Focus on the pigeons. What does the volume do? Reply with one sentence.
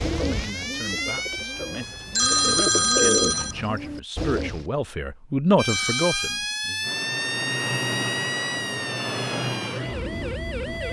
The volume of the pigeons goes up, then down.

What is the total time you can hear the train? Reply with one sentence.
You can hear the train for 4 seconds altogether.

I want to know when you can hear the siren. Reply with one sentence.
You can hear the siren from 0.0 to 2.5 s and from 5.5 to 10.8 s.